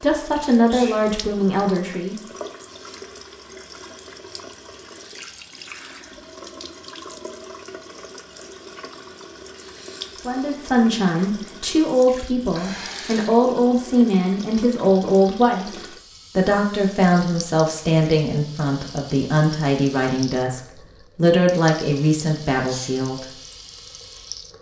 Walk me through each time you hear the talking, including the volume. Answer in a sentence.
You can hear the talking briefly from 0.0 to 2.1 s; and from 10.2 to 23.2 s, at a steady volume.